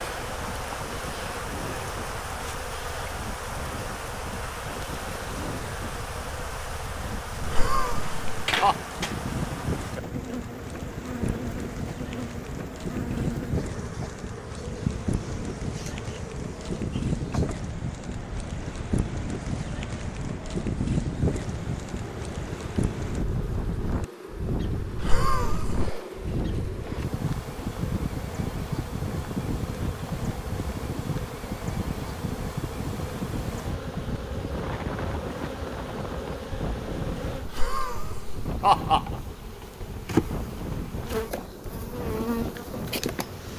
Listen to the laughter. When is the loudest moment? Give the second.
39 s.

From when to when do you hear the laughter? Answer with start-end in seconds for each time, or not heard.
7.4-8.8, 24.9-26.0, 37.5-39.0.